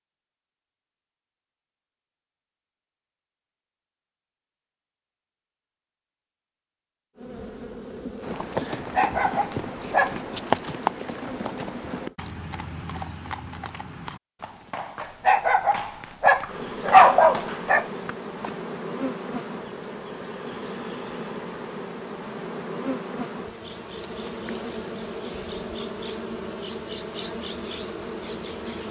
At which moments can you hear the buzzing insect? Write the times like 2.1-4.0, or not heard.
7.2-12.2, 16.4-28.8.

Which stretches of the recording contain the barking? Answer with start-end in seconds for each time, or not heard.
8.8-10.2, 15.0-17.9.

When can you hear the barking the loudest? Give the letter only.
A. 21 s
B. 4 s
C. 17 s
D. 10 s
C.